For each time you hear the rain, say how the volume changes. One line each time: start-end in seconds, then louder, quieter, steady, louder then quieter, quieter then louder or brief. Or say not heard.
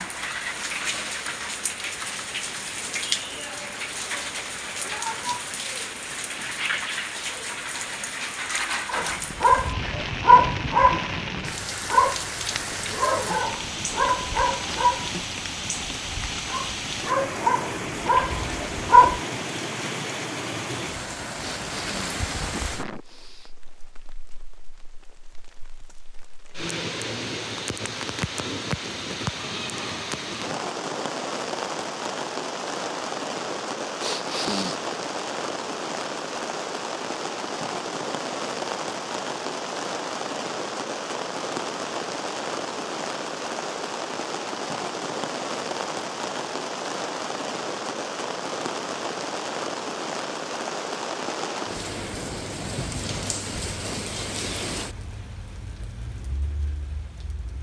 0.0-57.5 steady.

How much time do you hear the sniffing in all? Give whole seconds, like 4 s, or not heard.
3 s.